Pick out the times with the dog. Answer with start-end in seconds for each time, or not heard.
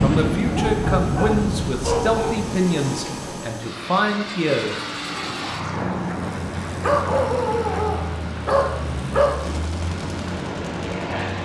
0.5-2.4, 6.8-9.4.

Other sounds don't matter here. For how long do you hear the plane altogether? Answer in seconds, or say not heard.
11 s.